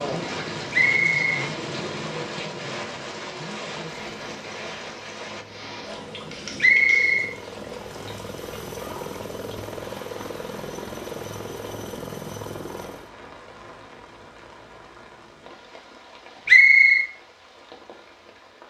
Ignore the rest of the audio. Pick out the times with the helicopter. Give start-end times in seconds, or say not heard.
0.0-13.1.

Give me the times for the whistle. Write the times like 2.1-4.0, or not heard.
0.7-1.2, 6.6-7.3, 16.4-17.1.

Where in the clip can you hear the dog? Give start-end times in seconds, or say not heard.
not heard.